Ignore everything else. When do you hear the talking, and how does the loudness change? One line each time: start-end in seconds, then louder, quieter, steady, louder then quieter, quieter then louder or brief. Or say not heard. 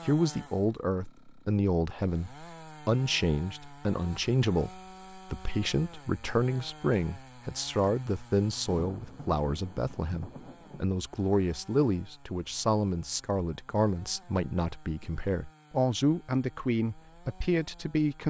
0.0-18.2 steady.